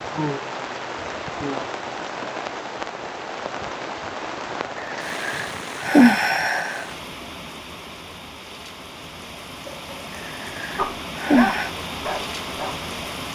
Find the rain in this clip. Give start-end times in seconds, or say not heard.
0.0-13.2.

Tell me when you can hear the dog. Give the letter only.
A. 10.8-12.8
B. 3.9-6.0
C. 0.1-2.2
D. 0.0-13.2
A.